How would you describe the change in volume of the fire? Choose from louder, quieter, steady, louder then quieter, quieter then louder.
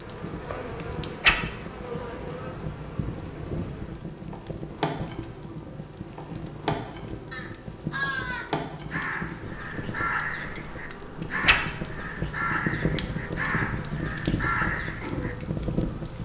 louder.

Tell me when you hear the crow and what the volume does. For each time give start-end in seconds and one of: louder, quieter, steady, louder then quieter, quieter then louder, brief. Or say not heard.
7.3-15.3 steady.